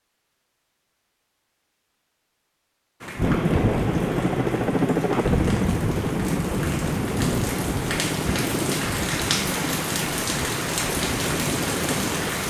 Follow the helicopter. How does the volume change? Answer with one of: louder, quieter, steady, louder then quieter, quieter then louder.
quieter.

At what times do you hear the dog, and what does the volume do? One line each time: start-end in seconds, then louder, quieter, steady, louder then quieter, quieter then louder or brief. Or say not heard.
not heard.